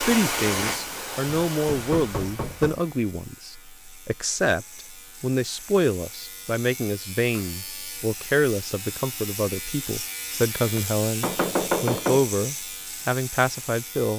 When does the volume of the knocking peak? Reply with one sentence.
The volume of the knocking peaks at 12 seconds.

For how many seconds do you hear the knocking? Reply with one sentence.
The knocking can be heard for 3 seconds in total.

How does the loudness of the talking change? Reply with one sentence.
The volume of the talking stays about the same.